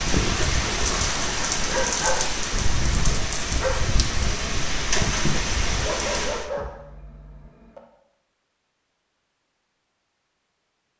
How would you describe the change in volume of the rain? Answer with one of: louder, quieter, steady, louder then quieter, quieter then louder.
steady.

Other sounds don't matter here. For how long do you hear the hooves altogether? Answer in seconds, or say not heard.
not heard.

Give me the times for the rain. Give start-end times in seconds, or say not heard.
0.0-6.5.